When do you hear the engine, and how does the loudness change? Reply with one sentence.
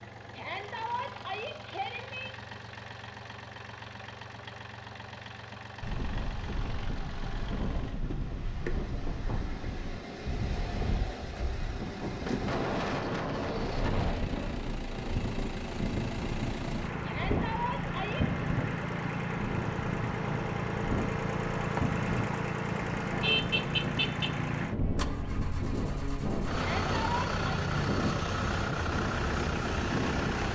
The engine can be heard from 0.0 to 30.5 s, getting louder.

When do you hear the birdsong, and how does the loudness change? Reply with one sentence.
The birdsong can't be heard in this clip.